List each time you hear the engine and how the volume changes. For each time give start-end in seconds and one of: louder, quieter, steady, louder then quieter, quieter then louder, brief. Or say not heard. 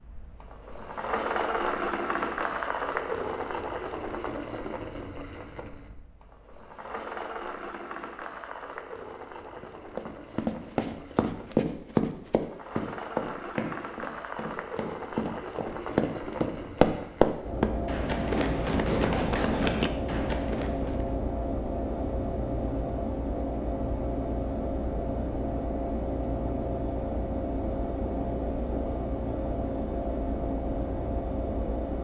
0.0-31.9 quieter then louder.